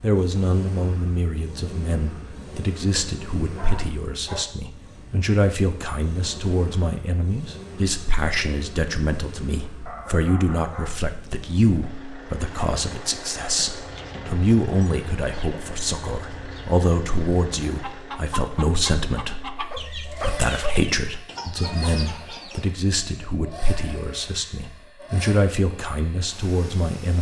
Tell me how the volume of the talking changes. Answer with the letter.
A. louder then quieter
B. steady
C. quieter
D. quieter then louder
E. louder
B.